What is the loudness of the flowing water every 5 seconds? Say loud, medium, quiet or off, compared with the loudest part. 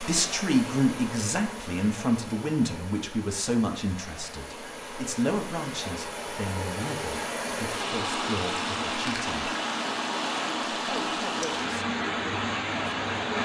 medium, loud, loud.